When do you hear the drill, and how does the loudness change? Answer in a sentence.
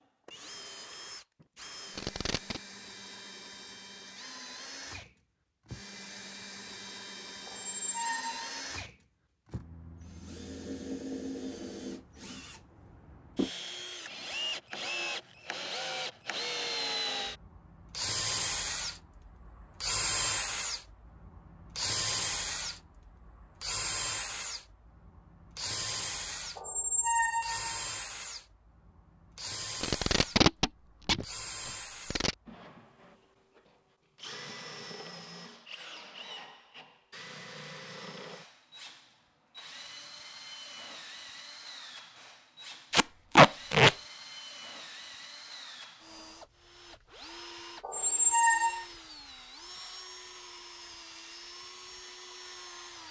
You can hear the drill from 0.0 to 53.0 s, getting louder then quieter.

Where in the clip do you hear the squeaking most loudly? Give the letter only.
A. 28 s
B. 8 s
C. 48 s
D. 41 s
C.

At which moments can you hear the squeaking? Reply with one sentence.
You can hear the squeaking from 7.5 to 8.5 s, from 26.6 to 27.9 s and from 47.8 to 48.9 s.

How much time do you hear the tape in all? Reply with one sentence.
You can hear the tape for 4 seconds altogether.